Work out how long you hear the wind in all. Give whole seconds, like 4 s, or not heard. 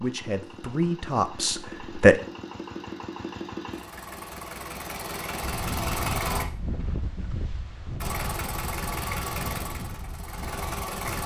6 s.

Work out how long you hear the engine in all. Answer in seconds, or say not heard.
10 s.